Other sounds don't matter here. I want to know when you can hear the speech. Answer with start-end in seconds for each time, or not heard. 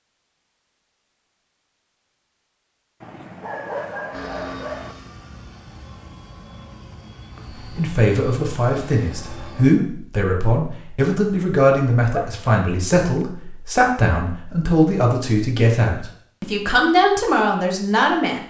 7.8-18.4.